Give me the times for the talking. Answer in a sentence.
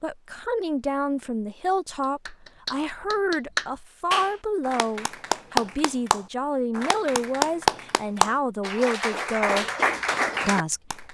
You can hear the talking from 0.0 to 9.7 s and from 10.4 to 11.0 s.